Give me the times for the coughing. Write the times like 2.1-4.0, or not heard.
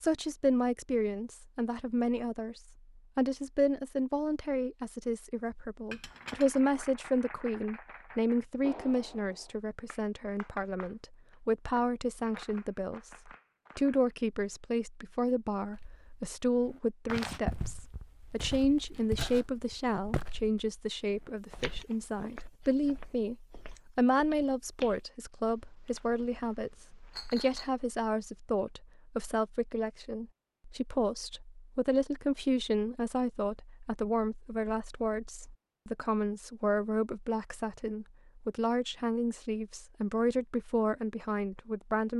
not heard.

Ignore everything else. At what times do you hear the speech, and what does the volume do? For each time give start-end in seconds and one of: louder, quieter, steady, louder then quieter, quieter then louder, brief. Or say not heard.
0.0-42.1 steady.